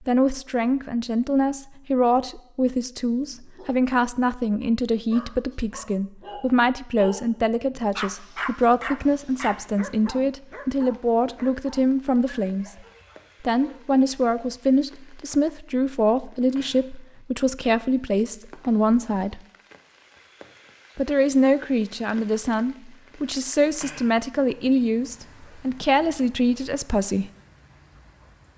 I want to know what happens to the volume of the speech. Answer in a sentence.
The loudness of the speech stays about the same.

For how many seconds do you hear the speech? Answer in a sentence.
You can hear the speech for 25 seconds altogether.